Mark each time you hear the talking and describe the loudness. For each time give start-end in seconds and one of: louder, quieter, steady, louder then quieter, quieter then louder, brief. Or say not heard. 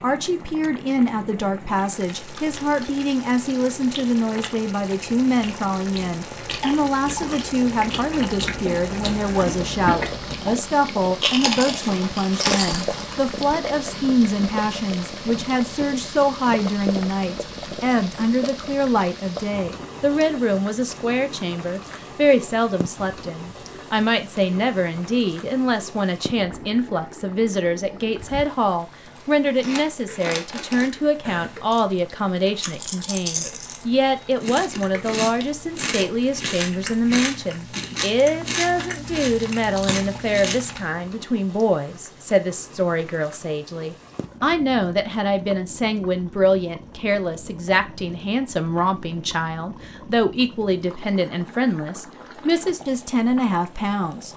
0.0-54.3 steady.